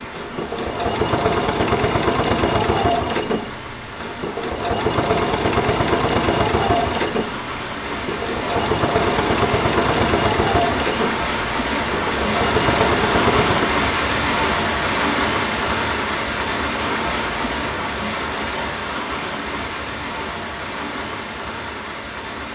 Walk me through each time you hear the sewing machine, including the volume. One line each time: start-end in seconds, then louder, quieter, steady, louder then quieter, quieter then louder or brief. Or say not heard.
0.0-13.8 steady.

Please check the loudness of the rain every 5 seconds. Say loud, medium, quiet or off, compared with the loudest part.
quiet, medium, loud, loud, medium.